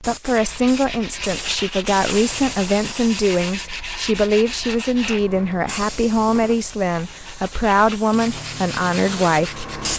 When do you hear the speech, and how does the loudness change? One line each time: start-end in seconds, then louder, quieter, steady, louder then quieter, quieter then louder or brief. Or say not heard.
0.0-9.7 steady.